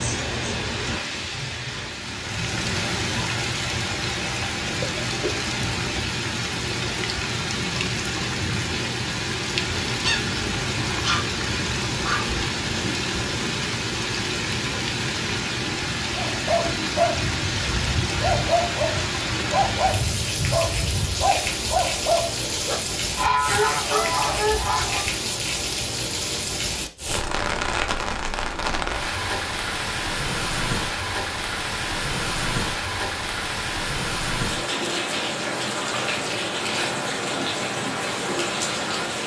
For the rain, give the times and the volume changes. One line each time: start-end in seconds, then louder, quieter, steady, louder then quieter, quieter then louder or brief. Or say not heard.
0.0-39.2 steady.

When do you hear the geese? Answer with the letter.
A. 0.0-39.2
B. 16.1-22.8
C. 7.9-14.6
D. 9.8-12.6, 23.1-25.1
D.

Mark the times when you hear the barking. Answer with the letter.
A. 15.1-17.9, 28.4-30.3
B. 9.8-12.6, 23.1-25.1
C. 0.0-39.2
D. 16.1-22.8
D.